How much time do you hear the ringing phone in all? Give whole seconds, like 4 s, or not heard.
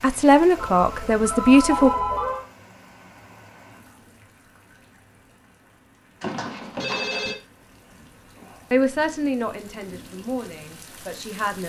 3 s.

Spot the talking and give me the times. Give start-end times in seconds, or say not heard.
0.0-1.9, 8.7-11.6.